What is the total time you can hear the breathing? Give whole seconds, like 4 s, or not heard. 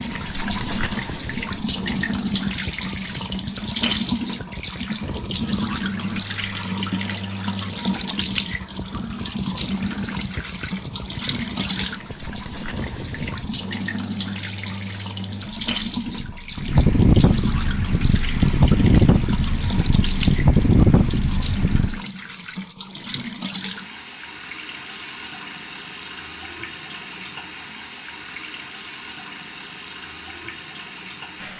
not heard.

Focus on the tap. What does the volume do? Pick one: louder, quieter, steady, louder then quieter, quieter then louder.
quieter.